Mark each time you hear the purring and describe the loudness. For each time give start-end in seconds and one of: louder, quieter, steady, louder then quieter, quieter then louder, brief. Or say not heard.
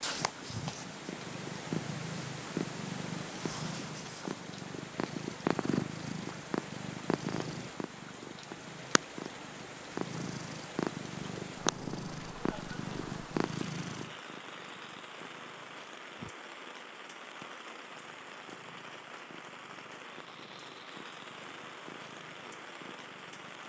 0.0-23.6 quieter.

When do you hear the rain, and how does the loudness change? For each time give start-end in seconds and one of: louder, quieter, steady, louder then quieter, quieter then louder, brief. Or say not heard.
0.1-23.6 steady.